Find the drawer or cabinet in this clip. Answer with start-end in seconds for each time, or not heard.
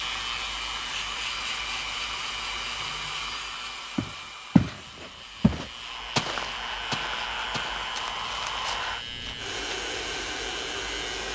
not heard.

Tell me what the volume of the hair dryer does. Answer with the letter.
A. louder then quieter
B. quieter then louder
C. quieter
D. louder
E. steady
B.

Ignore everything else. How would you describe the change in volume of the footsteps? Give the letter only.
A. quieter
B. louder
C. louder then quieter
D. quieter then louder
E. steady
A.